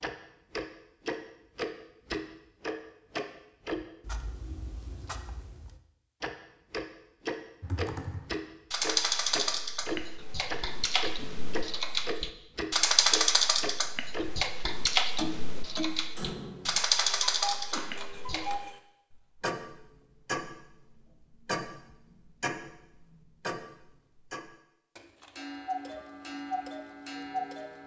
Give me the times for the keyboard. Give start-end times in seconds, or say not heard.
7.6-18.6.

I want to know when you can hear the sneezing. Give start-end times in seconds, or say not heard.
17.7-18.4.